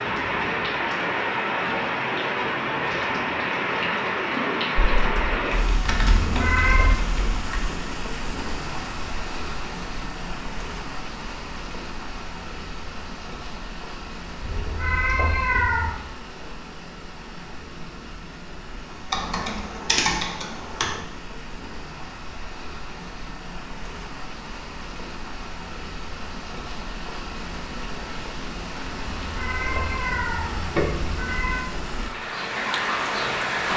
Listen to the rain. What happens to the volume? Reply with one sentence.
The volume of the rain goes down, then up.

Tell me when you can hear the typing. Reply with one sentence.
The typing can be heard from 4.8 to 7.7 s and from 19.1 to 20.9 s.